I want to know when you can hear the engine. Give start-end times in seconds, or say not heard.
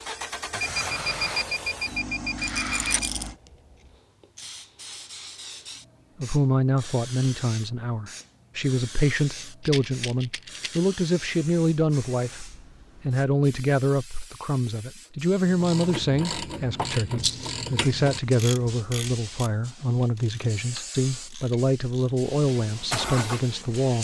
0.0-3.4, 22.2-23.9.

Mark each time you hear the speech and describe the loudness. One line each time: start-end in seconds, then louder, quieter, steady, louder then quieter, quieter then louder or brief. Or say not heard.
6.2-23.9 steady.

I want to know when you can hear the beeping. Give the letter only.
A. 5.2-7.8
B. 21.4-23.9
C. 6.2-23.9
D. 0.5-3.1
D.